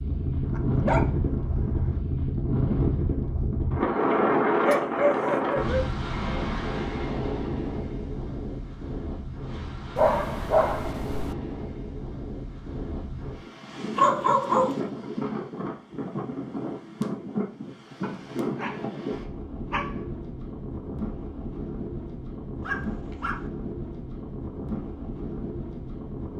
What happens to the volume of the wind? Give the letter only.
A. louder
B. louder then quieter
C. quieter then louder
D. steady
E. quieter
E.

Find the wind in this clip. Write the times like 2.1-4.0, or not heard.
0.0-26.3.